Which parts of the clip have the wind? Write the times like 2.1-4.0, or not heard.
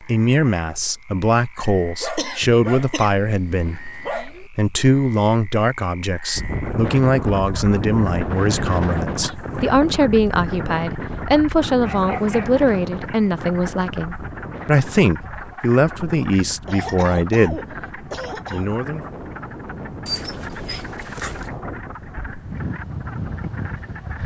6.3-24.2.